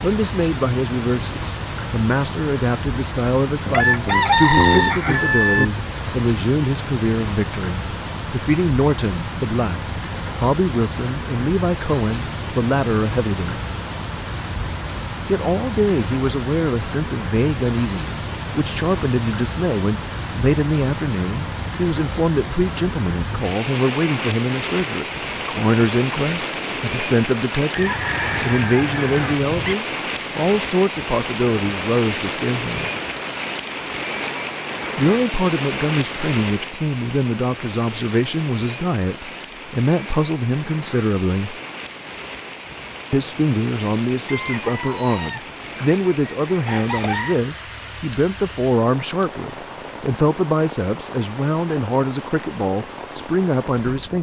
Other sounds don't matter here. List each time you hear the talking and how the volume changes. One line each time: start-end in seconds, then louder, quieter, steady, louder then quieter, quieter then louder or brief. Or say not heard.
0.0-13.7 steady
15.2-32.9 steady
35.0-41.5 steady
43.1-54.1 steady.